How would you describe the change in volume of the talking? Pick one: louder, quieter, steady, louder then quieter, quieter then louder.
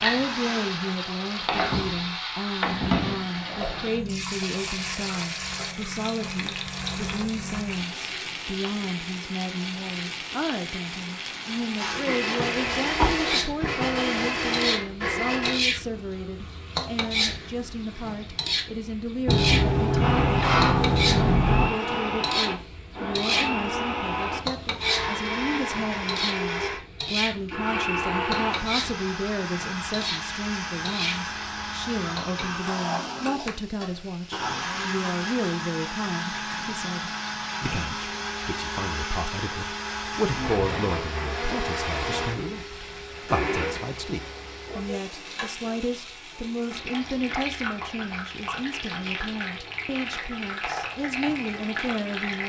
steady.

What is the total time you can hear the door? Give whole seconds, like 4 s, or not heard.
5 s.